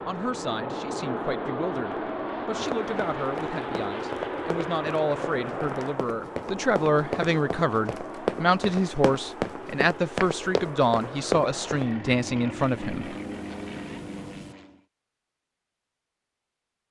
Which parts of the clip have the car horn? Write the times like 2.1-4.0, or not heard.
not heard.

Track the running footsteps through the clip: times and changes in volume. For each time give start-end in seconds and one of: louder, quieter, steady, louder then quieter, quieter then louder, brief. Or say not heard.
2.6-11.8 louder.